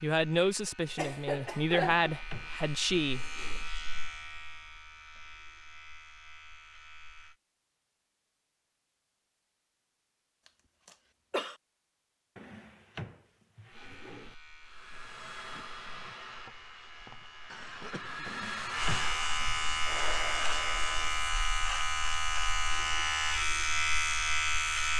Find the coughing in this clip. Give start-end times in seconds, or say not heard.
0.9-2.1, 10.8-11.6, 17.5-18.2.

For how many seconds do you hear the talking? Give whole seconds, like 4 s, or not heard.
3 s.